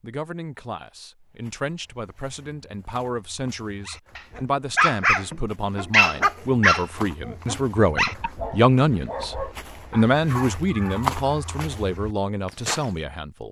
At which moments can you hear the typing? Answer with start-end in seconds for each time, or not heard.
not heard.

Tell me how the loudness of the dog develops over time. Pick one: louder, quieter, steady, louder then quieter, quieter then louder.
quieter.